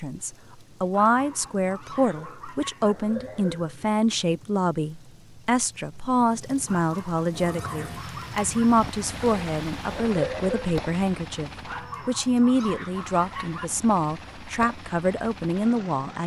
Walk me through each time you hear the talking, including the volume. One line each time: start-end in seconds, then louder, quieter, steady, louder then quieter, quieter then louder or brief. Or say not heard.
0.0-16.2 steady.